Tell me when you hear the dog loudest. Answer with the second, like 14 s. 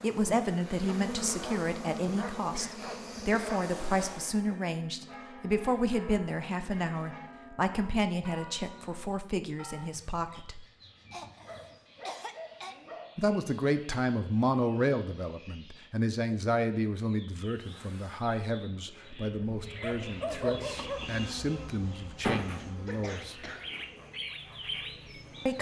20 s.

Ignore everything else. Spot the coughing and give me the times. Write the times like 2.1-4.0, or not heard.
2.5-3.7, 11.1-12.8, 22.9-23.7.